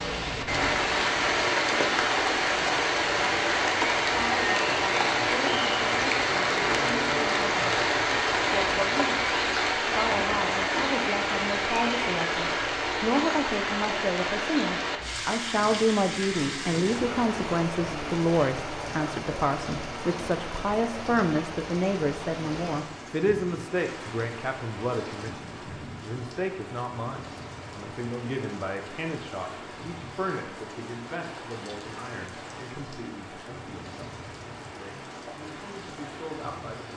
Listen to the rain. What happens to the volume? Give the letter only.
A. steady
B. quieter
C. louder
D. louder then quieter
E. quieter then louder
B.